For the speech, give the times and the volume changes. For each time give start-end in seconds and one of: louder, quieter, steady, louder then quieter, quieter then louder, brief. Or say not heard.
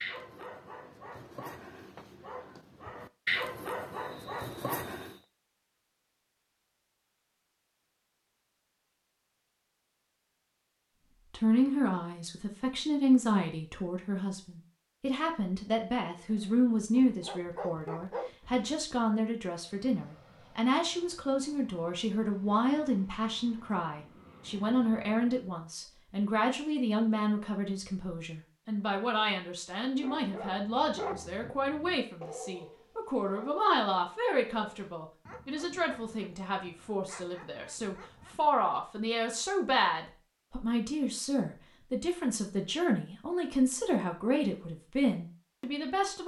11.3-46.2 steady.